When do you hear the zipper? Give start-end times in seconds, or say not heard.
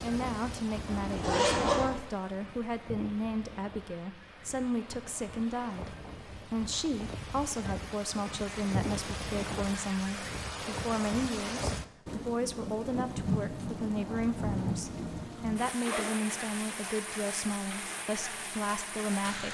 0.9-1.9, 15.8-16.4.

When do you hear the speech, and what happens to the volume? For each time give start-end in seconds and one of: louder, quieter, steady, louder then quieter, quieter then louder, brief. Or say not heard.
0.0-19.4 steady.